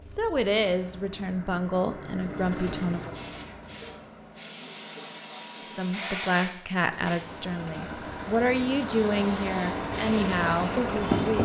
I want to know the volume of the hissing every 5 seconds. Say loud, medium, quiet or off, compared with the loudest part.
quiet, medium, loud.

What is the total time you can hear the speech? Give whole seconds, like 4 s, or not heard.
9 s.